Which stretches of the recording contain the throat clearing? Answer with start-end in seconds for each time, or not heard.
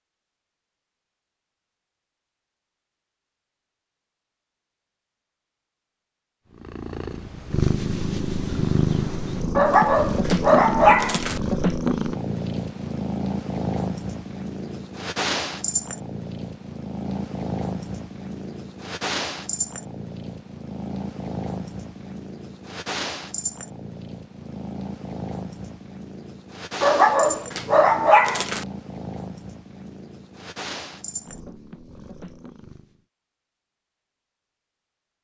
not heard.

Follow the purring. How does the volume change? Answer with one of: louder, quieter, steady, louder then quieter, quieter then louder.
quieter.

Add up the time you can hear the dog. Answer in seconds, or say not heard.
4 s.